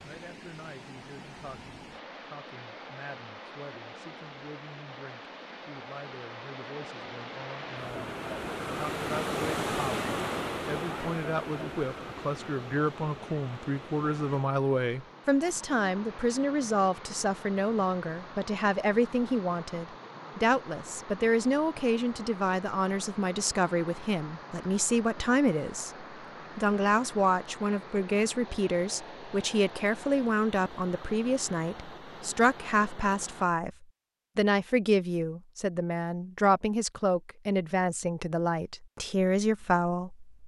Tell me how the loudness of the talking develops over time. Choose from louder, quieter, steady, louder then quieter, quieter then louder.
louder.